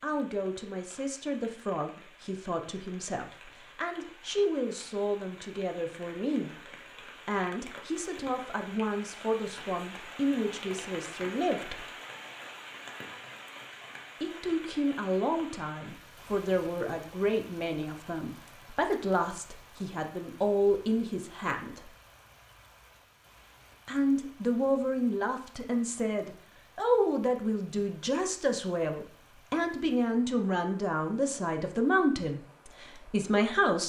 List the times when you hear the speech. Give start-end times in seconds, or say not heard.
0.0-6.5, 7.2-11.8, 14.2-21.9, 23.9-33.8.